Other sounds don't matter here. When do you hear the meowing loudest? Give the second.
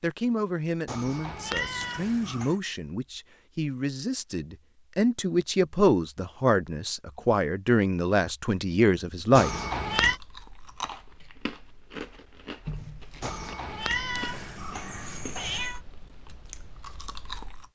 10 s.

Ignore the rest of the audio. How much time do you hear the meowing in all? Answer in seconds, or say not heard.
5 s.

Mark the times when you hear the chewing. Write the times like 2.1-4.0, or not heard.
9.9-17.7.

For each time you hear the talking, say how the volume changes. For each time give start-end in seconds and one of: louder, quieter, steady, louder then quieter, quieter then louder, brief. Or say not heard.
0.0-9.5 louder.